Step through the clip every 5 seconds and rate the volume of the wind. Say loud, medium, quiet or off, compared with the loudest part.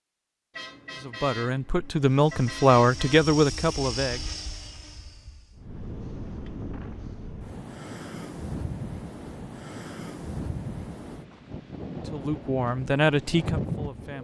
off, loud, loud.